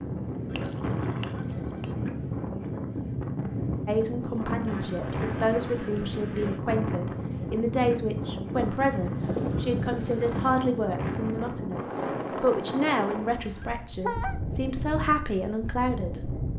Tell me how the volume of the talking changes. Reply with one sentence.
The loudness of the talking stays about the same.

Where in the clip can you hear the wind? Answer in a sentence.
The wind can be heard from 0.0 to 16.5 s.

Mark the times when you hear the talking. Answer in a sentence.
You can hear the talking from 3.9 to 16.2 s.